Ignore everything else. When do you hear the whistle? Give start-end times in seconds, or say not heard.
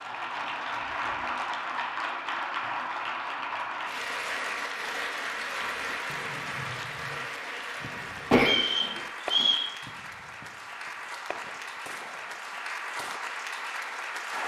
8.3-9.7.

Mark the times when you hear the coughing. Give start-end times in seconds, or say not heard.
8.3-9.4.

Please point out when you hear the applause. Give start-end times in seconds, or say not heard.
0.0-14.4.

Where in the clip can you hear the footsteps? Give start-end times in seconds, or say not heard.
not heard.